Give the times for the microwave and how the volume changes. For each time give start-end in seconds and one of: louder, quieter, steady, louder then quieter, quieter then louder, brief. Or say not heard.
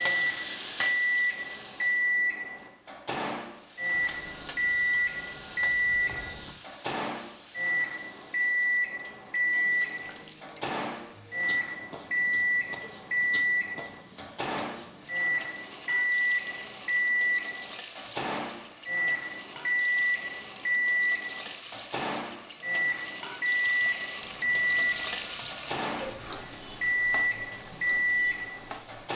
0.0-29.1 steady.